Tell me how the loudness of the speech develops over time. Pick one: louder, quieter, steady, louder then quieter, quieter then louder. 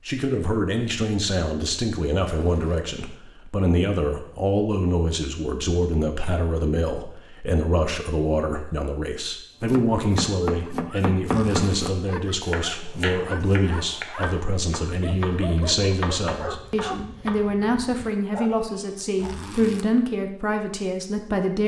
steady.